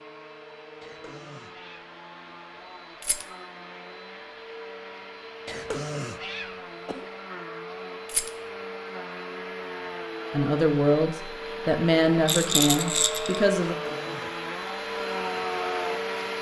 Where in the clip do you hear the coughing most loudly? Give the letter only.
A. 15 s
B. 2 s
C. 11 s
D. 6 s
D.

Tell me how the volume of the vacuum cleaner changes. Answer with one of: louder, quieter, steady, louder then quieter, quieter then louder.
louder.